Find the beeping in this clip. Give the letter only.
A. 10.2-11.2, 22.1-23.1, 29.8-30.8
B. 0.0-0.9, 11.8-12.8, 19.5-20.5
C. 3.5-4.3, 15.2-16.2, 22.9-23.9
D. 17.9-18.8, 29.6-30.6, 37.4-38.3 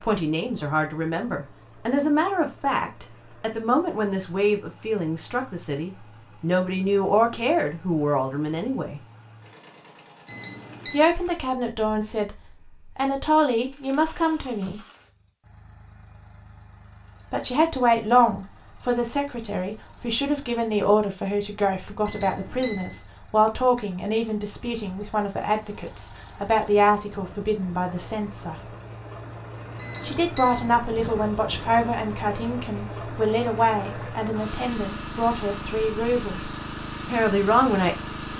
A.